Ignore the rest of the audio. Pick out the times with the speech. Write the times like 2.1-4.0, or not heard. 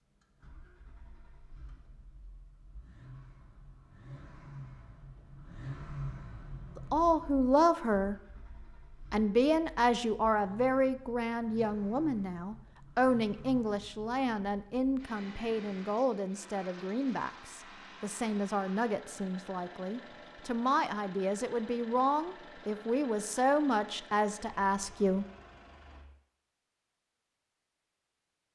6.8-8.2, 9.1-25.2.